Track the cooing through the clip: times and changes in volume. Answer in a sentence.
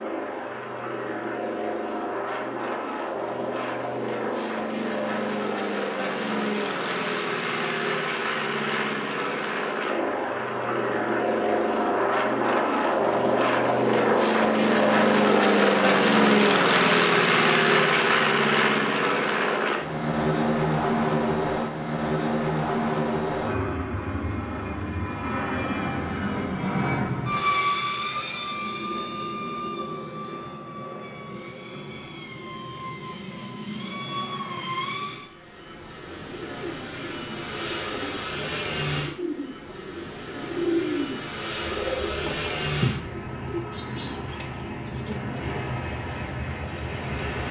The cooing can be heard from 36.0 to 45.6 s, getting louder then quieter.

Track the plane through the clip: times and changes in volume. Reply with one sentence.
The plane can be heard from 0.0 to 47.4 s, getting louder then quieter.